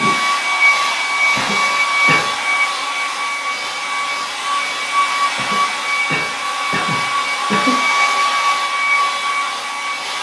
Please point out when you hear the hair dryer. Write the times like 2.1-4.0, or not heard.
0.0-10.1.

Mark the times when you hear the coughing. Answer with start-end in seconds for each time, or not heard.
1.4-2.4, 5.3-7.9.